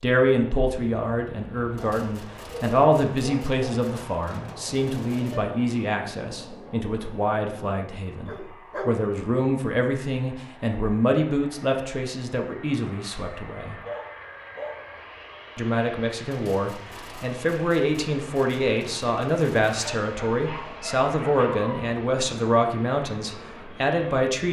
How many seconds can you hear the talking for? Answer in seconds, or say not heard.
23 s.